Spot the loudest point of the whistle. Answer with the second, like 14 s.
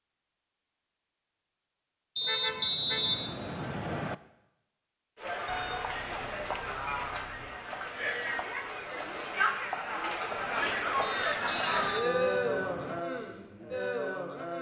3 s.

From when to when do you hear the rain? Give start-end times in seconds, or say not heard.
not heard.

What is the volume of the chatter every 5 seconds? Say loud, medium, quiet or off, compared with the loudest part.
off, loud, loud.